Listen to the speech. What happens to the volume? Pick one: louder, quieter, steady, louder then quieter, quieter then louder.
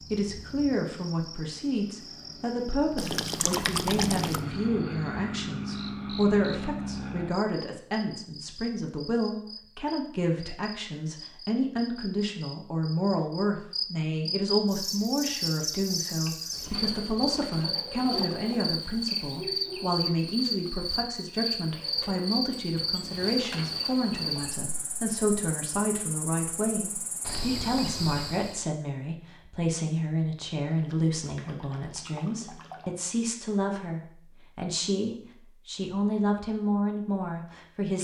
steady.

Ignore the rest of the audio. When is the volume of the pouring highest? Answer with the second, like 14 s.
4 s.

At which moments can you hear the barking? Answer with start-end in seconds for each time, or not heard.
not heard.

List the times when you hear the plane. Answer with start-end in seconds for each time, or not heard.
0.0-7.3.